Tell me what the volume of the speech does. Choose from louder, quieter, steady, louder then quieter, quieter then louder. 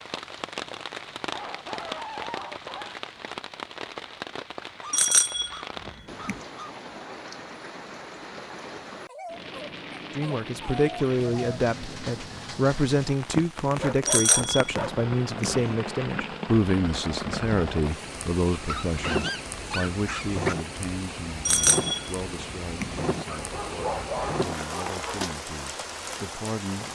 quieter.